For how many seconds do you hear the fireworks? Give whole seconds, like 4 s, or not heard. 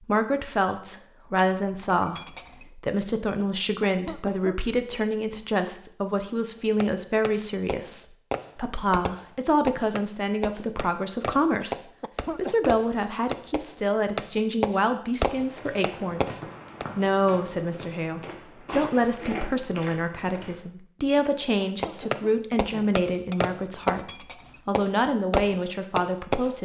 14 s.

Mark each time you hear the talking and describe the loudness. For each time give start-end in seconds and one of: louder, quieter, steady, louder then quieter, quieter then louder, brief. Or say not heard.
0.0-26.6 steady.